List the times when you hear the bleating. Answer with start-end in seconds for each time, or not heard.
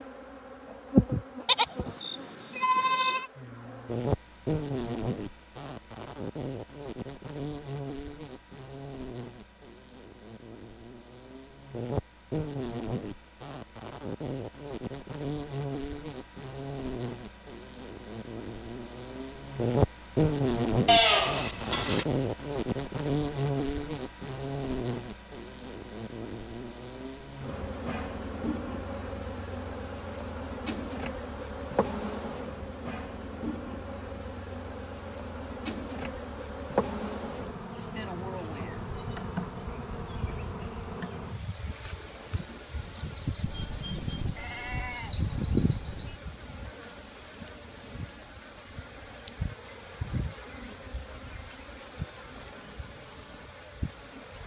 1.4-3.3, 20.9-22.1, 43.5-46.2.